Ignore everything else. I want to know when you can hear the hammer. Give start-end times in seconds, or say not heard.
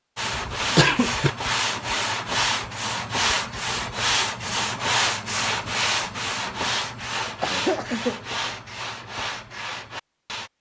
not heard.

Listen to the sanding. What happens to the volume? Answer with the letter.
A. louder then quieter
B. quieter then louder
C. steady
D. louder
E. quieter
E.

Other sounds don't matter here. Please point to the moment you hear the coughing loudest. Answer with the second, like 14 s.
1 s.